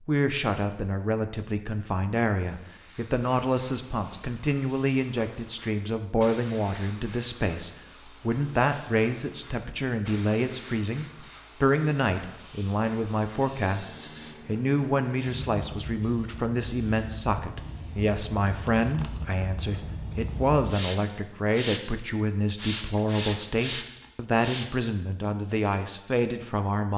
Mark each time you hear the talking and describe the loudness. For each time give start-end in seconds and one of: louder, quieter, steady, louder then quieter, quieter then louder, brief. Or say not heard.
0.0-26.9 steady.